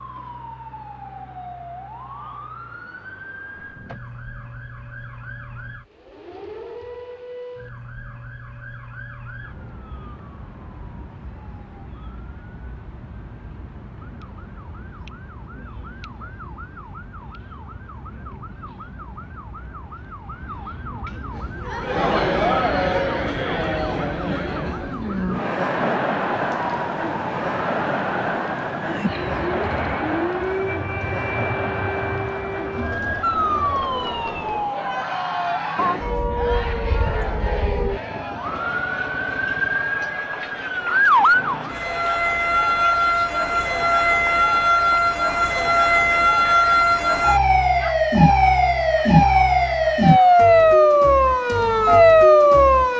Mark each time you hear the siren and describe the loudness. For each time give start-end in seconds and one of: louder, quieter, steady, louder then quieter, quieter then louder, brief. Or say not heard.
0.0-52.9 louder.